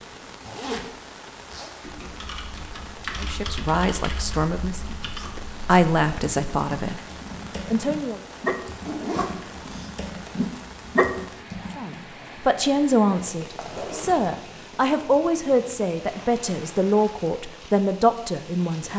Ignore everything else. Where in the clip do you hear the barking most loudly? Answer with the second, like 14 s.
11 s.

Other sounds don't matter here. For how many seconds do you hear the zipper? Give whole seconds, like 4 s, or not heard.
3 s.